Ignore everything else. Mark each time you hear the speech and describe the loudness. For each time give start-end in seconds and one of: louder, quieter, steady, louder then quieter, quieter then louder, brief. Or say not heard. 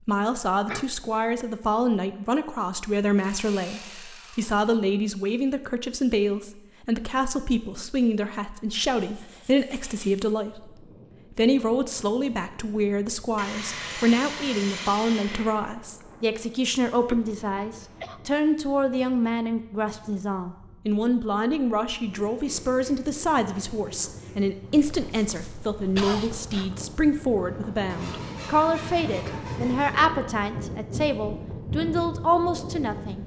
0.1-33.2 steady.